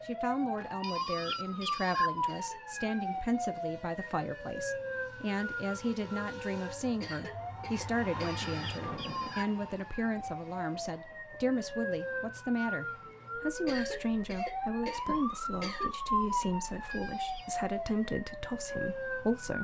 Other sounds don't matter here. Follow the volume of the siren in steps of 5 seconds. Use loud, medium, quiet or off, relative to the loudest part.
loud, medium, loud, loud.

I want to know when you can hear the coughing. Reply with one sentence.
The coughing can be heard from 2.2 to 2.7 s, from 7.0 to 8.5 s and from 13.7 to 15.9 s.